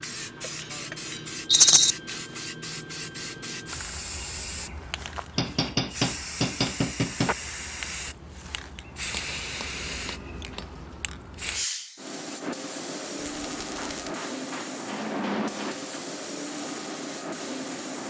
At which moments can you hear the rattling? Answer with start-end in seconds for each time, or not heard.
1.5-1.9, 13.2-14.1.